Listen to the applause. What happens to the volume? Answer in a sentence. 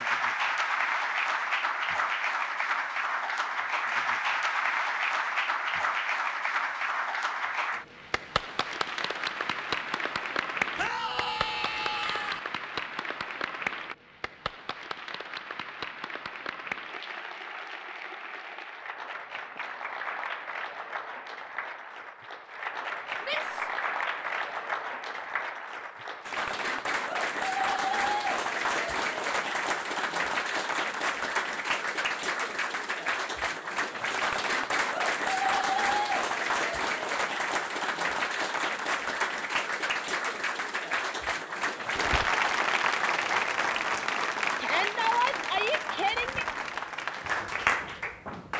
The volume of the applause goes down, then up.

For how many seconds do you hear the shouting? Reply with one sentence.
The shouting can be heard for 4 seconds in total.